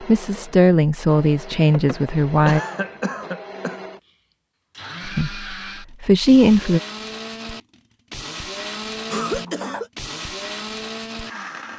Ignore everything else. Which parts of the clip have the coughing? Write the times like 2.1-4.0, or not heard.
1.7-3.8, 9.1-9.9.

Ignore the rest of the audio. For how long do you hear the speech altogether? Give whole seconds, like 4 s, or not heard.
4 s.